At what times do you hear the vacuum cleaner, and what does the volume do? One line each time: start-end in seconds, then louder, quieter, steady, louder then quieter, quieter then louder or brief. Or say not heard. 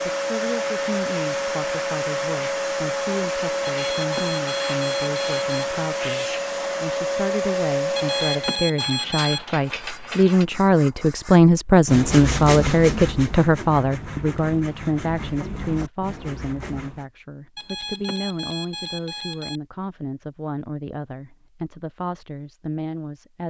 0.0-8.7 steady.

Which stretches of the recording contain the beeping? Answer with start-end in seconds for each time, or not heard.
3.6-5.7, 8.0-9.4, 17.6-19.6.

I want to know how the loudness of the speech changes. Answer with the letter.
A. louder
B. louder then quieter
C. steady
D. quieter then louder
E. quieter
B.